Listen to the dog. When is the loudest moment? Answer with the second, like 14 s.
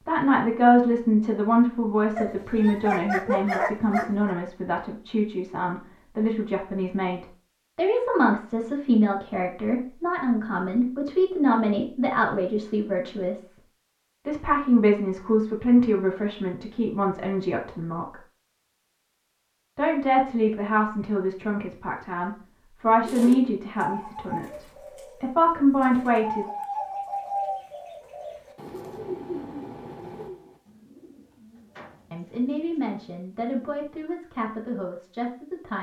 3 s.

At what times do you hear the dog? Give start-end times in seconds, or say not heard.
2.1-4.3.